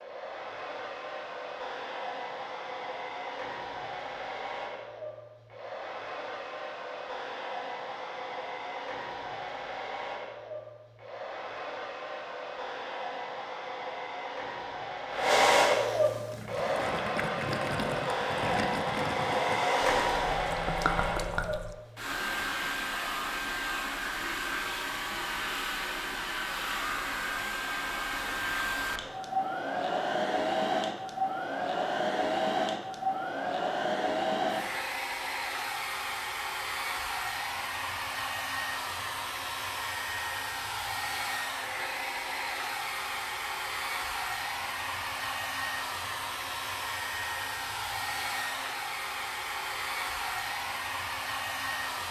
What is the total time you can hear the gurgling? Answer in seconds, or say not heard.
6 s.